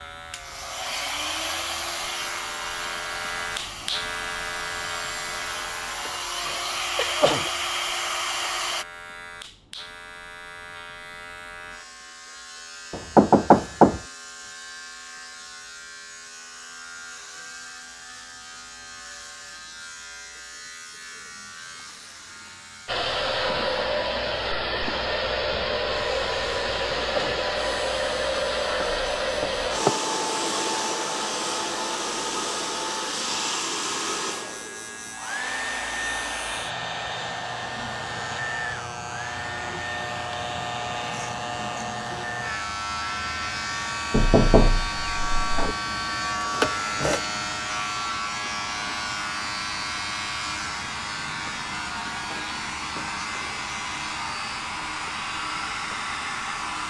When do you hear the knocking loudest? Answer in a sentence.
The loudest moment of the knocking is at 14 seconds.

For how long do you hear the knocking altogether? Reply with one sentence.
The knocking can be heard for 4 seconds in total.